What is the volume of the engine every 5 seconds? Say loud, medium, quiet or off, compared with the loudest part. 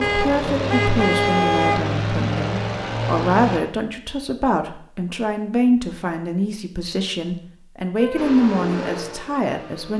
loud, medium.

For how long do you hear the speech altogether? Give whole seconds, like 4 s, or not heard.
10 s.